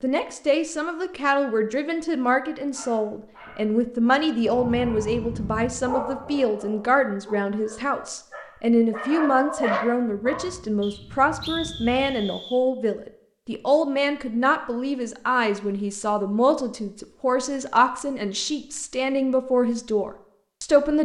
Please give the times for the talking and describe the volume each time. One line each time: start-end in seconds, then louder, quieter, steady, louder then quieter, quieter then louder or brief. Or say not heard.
0.0-21.0 steady.